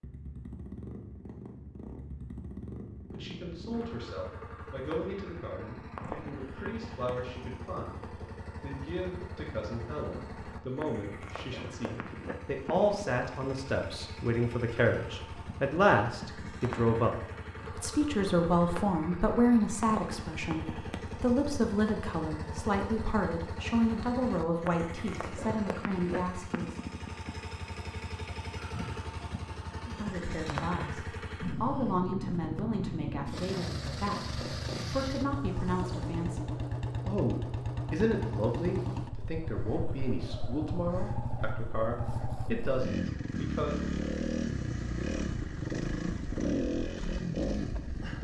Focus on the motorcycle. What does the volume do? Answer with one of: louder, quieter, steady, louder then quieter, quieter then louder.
louder.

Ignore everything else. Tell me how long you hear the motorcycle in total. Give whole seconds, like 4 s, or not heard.
48 s.